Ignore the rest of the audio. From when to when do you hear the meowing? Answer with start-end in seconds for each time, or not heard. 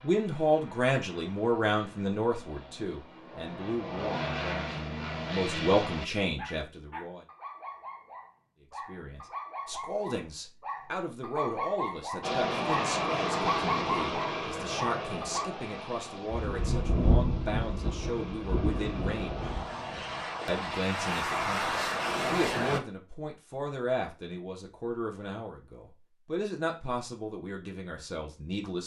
not heard.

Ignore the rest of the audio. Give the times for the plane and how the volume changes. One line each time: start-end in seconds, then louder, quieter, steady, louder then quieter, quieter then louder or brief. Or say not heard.
0.0-6.1 louder
12.2-22.8 quieter then louder.